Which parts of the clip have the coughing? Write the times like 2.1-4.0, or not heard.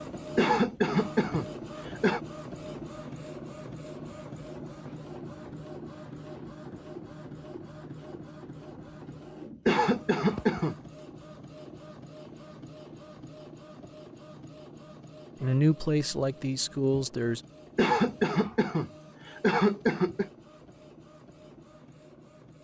0.3-2.2, 9.7-10.8, 17.8-20.3.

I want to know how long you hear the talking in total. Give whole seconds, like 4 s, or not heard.
2 s.